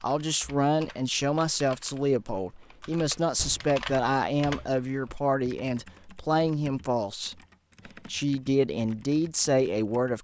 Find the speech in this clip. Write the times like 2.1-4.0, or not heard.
0.0-7.3, 8.1-10.1.